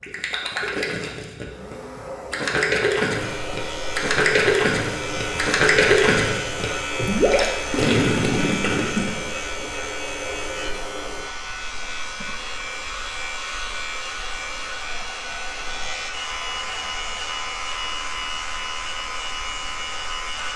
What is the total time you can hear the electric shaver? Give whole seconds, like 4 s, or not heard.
17 s.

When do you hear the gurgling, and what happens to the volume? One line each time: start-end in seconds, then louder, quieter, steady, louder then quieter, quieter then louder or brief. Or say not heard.
0.0-9.7 louder.